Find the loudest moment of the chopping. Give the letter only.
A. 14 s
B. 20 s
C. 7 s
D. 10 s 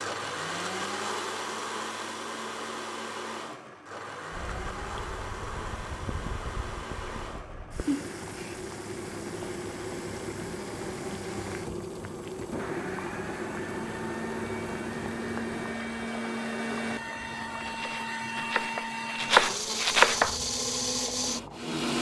B.